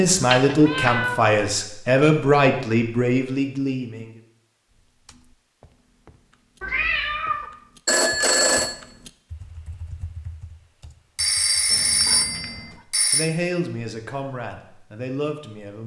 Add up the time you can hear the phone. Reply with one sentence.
You can hear the phone for 4 seconds altogether.